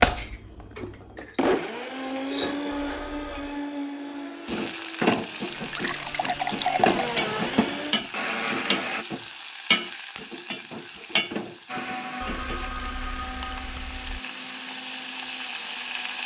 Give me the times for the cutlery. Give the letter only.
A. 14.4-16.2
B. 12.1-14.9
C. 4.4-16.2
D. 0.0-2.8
D.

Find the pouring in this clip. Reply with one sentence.
You can hear the pouring from 5.5 to 7.2 s.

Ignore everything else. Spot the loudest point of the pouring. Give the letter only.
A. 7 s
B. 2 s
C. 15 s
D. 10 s
A.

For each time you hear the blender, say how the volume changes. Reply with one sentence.
The blender can be heard from 0.0 to 9.1 s, getting quieter then louder; and from 11.7 to 16.2 s, getting quieter.